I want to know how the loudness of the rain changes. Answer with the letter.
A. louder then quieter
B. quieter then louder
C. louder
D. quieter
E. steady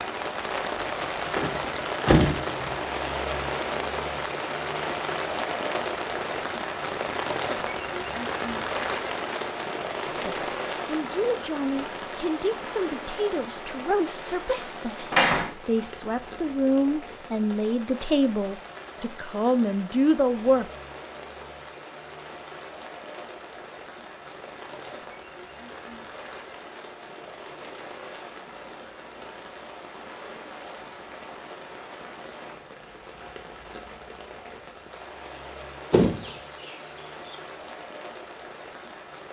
D.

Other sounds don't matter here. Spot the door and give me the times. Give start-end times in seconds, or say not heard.
1.4-2.9, 14.2-15.5, 35.9-37.4.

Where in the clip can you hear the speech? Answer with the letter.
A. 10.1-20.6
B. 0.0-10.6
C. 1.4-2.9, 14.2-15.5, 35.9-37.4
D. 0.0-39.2
A.